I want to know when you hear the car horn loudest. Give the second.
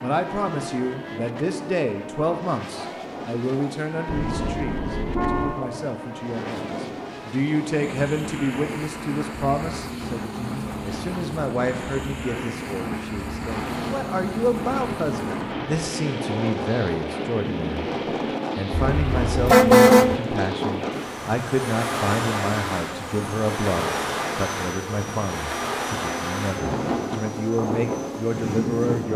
20 s.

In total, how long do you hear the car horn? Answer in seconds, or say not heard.
3 s.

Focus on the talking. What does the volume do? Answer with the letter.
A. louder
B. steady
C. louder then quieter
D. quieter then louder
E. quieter
B.